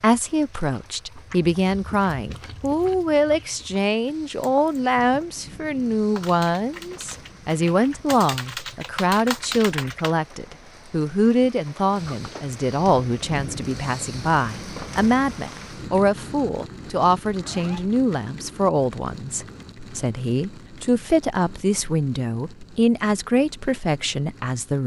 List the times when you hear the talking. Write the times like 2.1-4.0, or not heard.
0.0-24.8.